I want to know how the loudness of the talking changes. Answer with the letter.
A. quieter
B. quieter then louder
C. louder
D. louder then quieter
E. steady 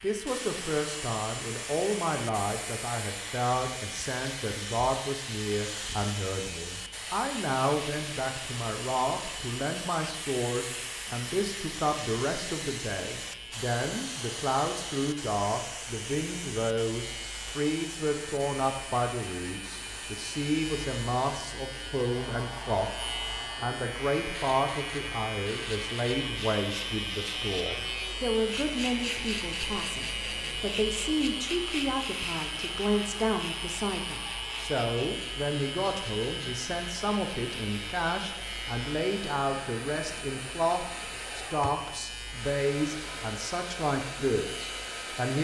E.